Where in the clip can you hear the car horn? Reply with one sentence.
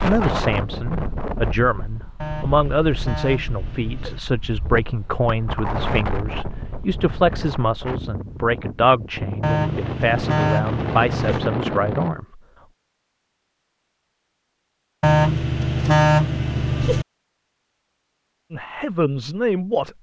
The car horn can be heard from 2.2 to 4.2 s, from 9.4 to 11.4 s and from 15.0 to 17.1 s.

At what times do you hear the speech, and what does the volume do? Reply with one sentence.
The speech can be heard from 0.0 to 12.4 s, at a steady volume; and briefly from 18.5 to 19.9 s.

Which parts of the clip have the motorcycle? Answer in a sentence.
The motorcycle can't be heard in this clip.